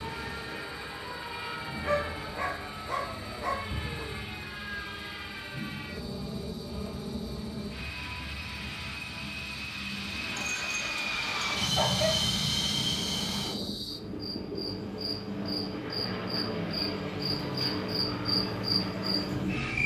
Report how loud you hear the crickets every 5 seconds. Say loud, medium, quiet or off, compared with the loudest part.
quiet, quiet, medium, loud.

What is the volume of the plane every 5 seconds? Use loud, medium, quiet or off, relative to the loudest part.
medium, medium, loud, medium.